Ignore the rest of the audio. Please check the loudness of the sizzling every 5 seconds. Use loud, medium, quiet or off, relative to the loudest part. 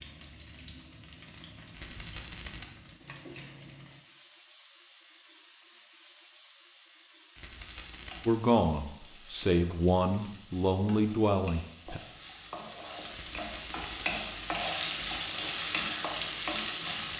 quiet, quiet, medium, loud.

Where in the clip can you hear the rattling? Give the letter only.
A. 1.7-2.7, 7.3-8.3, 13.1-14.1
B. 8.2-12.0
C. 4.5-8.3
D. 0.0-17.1
A.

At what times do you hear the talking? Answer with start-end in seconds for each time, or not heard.
8.2-12.0.